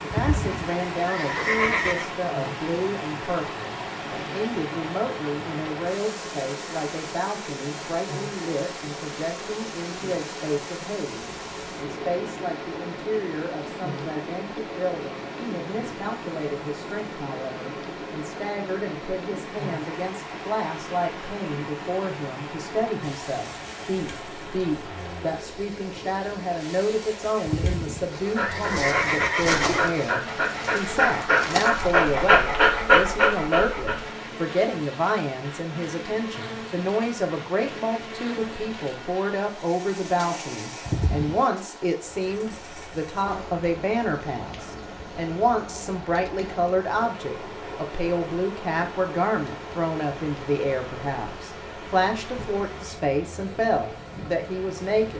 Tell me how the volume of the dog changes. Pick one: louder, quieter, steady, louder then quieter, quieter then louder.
louder.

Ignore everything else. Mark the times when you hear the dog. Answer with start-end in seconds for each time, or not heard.
28.1-34.1.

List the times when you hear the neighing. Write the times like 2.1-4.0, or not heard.
0.1-2.1, 27.4-29.9, 40.9-41.4.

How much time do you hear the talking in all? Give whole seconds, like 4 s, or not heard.
55 s.